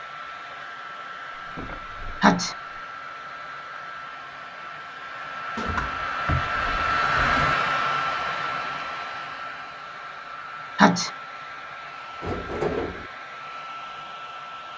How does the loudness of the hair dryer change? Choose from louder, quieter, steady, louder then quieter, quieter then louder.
louder then quieter.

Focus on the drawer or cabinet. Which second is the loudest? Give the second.
13 s.